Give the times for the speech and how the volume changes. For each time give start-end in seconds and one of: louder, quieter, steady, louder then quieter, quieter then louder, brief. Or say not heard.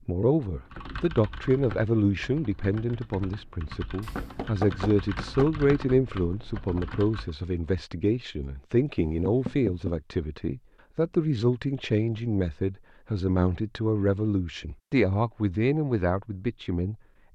0.1-17.3 steady.